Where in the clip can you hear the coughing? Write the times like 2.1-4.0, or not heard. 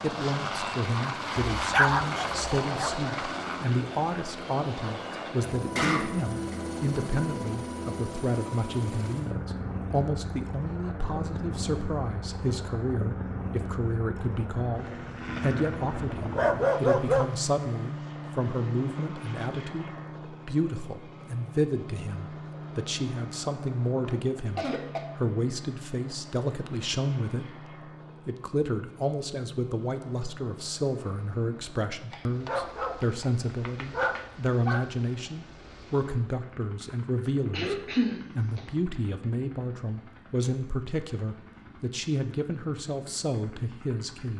5.8-6.5, 24.0-25.1, 37.5-38.6.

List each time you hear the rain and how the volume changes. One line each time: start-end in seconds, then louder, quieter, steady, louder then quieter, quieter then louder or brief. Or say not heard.
not heard.